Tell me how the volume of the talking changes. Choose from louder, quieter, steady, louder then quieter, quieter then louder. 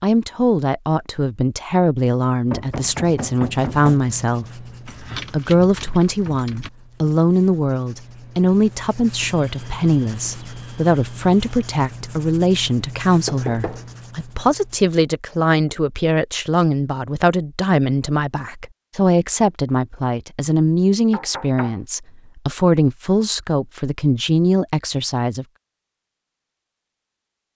steady.